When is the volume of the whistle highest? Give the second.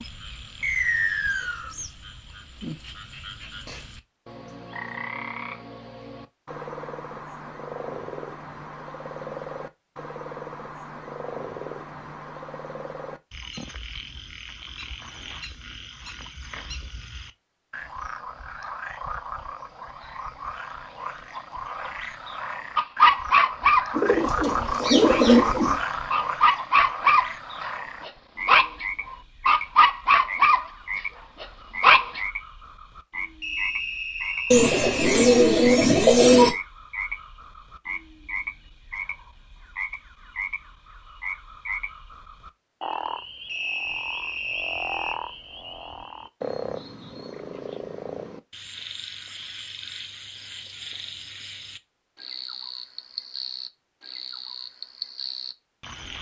1 s.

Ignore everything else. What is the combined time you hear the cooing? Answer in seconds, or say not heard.
4 s.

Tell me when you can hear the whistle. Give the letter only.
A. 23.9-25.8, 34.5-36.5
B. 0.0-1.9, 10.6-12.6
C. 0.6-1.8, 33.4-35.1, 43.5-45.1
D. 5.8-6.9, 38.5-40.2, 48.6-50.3
C.